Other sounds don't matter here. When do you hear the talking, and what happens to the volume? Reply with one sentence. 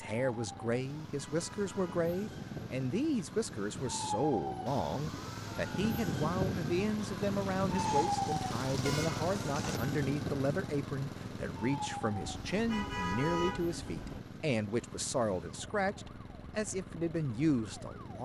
The talking can be heard from 0.0 to 18.2 s, at a steady volume.